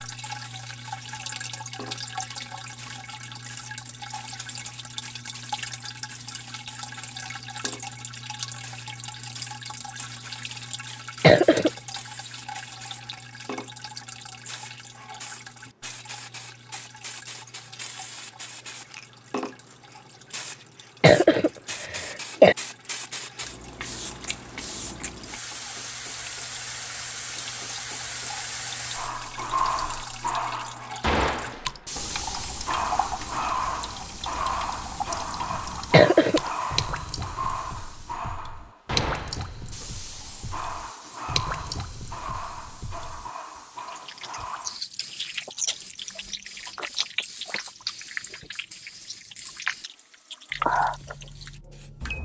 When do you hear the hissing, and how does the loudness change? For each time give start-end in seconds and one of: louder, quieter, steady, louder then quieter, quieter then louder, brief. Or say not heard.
0.1-52.2 louder then quieter.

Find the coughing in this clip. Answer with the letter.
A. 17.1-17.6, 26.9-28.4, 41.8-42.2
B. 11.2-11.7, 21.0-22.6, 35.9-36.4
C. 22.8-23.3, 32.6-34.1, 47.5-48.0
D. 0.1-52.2
B.